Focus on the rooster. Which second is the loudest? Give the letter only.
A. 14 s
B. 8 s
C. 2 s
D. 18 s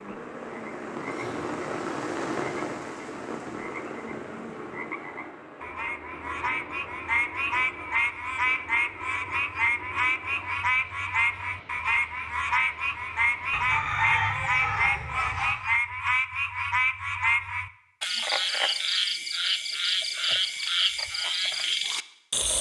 A.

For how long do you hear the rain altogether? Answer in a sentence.
The rain can be heard for 14 seconds in total.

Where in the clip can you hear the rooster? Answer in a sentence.
The rooster can be heard from 13.5 to 15.6 s.